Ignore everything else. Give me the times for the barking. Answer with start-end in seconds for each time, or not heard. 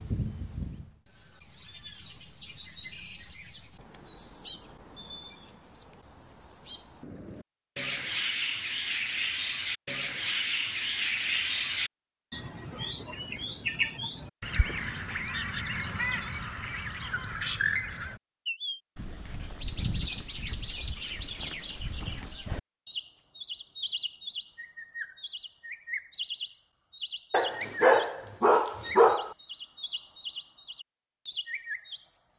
27.3-29.4.